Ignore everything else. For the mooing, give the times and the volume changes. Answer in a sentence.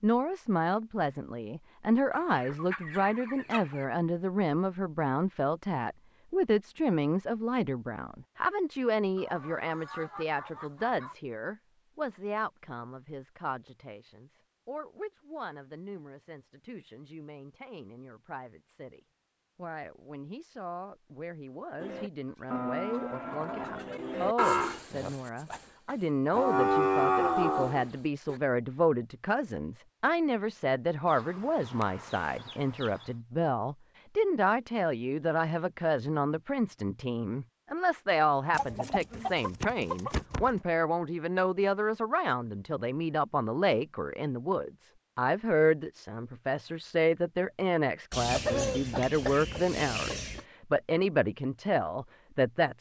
The mooing can be heard from 21.8 to 28.4 s, getting louder.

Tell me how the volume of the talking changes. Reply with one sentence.
The loudness of the talking goes down, then up.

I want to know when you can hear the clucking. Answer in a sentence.
The clucking can be heard from 2.1 to 3.9 s, from 9.2 to 11.2 s, from 22.2 to 24.1 s, from 31.1 to 33.1 s, from 38.5 to 40.6 s and from 48.1 to 50.5 s.